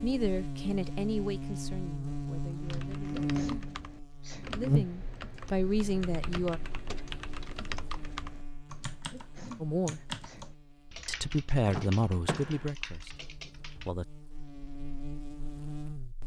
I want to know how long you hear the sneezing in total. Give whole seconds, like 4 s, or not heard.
3 s.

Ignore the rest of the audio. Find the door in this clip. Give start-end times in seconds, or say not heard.
2.5-3.0, 6.7-7.6, 11.7-12.7.